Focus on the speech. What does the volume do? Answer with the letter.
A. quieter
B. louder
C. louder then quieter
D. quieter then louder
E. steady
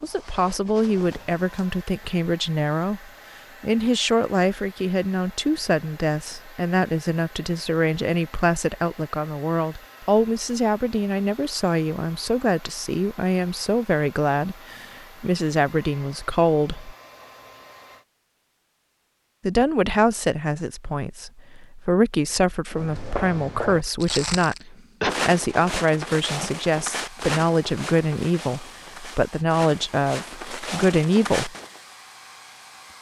E.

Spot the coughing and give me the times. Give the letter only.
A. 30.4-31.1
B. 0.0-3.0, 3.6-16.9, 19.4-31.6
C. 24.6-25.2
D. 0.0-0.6
C.